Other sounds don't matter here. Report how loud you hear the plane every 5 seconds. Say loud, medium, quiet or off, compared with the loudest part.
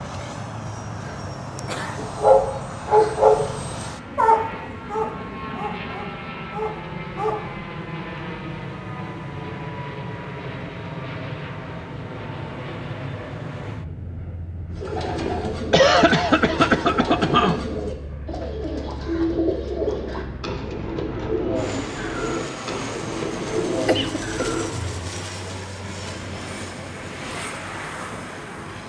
loud, loud, loud, medium, loud, loud.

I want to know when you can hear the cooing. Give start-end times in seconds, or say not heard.
14.7-25.1.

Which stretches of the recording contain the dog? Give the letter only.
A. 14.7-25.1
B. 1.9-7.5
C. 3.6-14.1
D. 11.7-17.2
B.